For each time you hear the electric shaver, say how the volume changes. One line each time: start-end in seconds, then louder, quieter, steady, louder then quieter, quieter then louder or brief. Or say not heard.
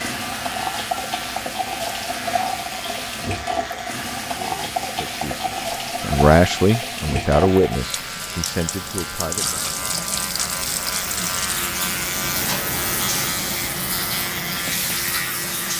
0.1-15.7 louder.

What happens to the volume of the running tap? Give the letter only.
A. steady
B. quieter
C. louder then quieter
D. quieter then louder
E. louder
A.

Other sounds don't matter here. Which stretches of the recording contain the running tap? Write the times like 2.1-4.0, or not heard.
0.0-15.7.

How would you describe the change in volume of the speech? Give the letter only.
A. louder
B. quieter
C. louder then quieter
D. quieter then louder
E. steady
C.